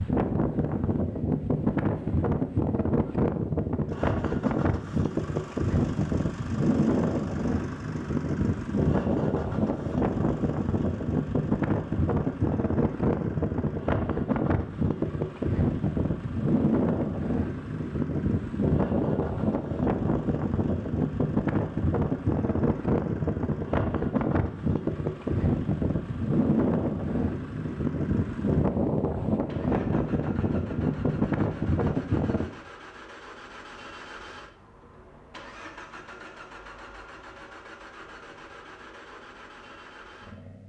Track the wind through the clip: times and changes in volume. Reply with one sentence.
You can hear the wind from 0.0 to 32.5 s, at a steady volume.